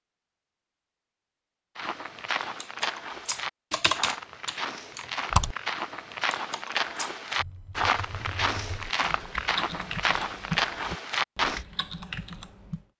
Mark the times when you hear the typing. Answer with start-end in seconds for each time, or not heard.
2.6-12.8.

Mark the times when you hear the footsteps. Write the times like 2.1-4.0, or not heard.
1.8-11.7.